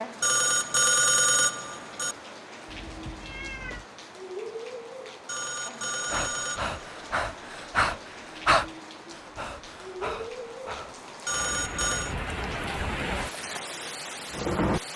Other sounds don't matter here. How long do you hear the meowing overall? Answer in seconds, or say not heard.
2 s.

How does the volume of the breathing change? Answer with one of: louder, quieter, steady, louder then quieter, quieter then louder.
louder then quieter.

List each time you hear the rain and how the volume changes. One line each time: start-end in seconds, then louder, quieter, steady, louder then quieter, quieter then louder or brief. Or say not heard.
0.0-14.9 louder.